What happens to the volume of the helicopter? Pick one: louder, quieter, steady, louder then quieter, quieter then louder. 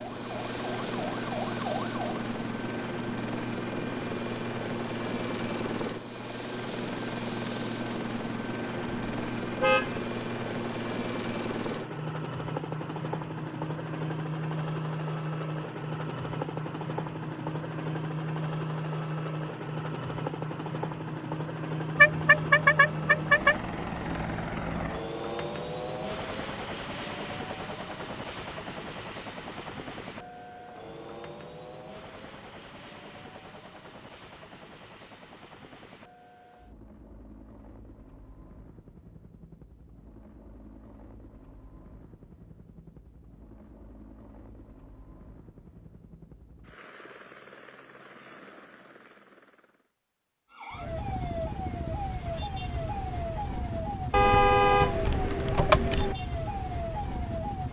quieter.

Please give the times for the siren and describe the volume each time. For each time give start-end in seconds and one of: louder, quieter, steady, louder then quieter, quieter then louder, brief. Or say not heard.
0.0-2.1 brief
50.5-57.6 steady.